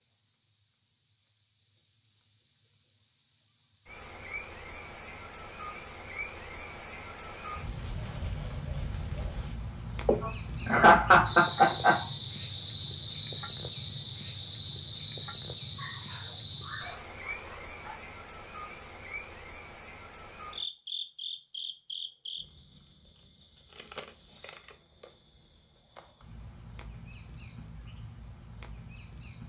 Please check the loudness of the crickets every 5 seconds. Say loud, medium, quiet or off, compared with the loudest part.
medium, loud, loud, loud, medium, medium.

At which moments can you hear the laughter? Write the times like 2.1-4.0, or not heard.
10.1-12.0.